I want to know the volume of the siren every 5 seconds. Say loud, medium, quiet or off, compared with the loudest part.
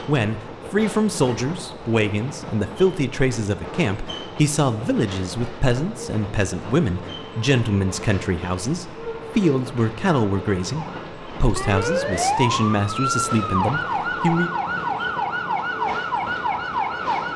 off, off, loud, loud.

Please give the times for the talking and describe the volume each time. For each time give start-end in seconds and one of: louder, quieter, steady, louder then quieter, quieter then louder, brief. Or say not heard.
0.1-14.5 steady.